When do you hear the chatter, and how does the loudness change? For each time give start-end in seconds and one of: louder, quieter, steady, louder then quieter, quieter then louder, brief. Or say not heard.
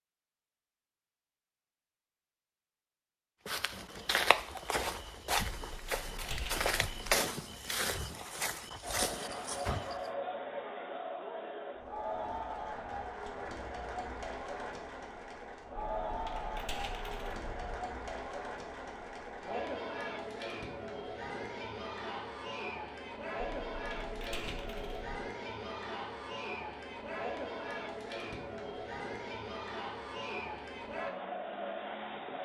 8.8-32.4 steady.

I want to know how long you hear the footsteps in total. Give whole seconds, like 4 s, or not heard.
7 s.